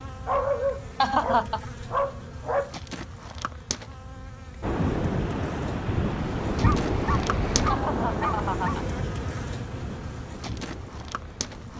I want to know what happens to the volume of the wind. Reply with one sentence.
The loudness of the wind goes down.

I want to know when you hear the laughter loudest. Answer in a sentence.
The loudest moment of the laughter is at 1 second.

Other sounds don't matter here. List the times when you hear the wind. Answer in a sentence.
The wind can be heard from 4.6 to 11.7 s.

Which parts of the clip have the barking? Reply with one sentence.
The barking can be heard from 0.2 to 2.8 s and from 6.6 to 8.8 s.